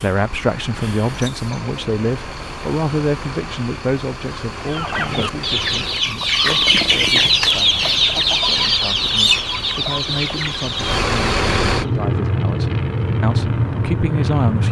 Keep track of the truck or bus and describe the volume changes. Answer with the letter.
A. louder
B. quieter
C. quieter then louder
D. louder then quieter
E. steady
A.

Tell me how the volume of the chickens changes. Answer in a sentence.
The loudness of the chickens goes up, then down.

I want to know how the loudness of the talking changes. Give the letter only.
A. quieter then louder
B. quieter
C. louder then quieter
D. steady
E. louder
A.